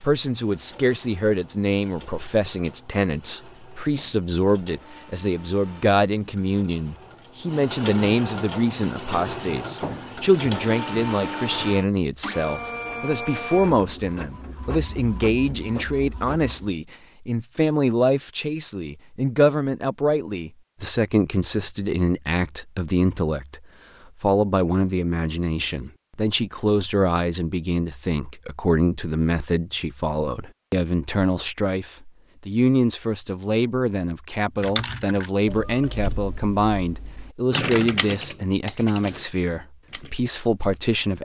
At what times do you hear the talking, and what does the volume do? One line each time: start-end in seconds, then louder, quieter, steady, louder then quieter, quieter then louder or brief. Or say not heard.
0.0-23.6 steady
24.2-41.1 steady.